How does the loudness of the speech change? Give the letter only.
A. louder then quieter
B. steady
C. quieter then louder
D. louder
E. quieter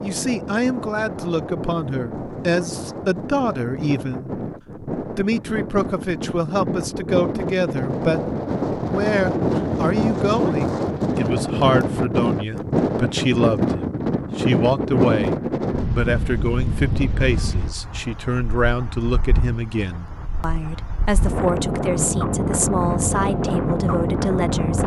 B.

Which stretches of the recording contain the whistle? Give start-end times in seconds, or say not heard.
not heard.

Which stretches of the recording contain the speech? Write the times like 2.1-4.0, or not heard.
0.0-24.8.